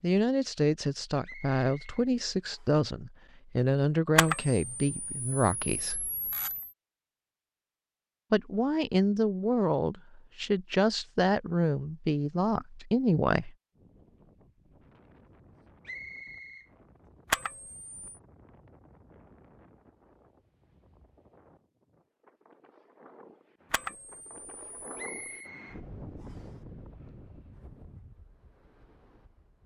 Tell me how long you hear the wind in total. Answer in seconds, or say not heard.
16 s.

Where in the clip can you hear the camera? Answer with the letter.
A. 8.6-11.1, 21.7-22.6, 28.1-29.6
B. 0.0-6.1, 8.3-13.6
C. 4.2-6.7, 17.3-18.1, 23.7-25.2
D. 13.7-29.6
C.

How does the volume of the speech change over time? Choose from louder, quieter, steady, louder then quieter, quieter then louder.
steady.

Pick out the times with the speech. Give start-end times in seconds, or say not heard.
0.0-6.1, 8.3-13.6.